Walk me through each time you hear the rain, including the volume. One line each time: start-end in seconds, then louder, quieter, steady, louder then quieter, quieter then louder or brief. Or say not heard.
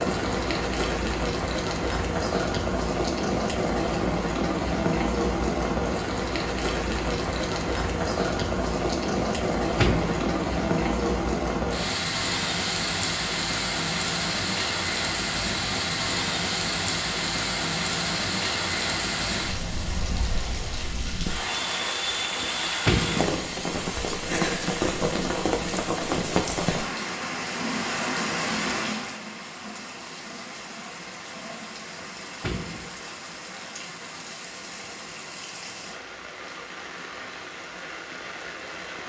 0.0-39.0 quieter.